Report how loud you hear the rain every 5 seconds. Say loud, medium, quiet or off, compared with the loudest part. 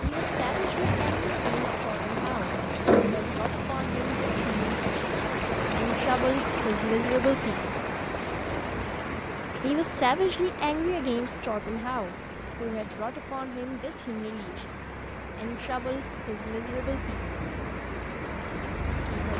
loud, loud, medium, medium.